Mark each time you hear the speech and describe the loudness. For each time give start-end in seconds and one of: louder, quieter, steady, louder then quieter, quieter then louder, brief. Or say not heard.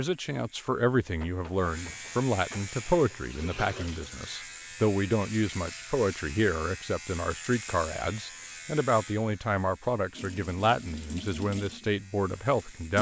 0.0-12.9 steady.